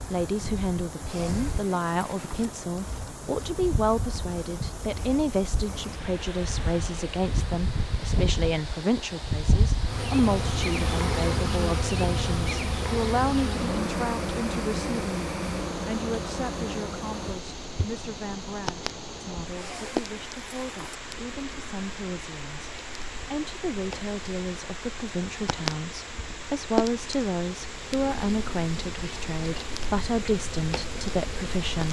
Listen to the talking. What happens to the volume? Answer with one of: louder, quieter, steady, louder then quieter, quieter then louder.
quieter then louder.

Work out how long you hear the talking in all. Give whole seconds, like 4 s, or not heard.
32 s.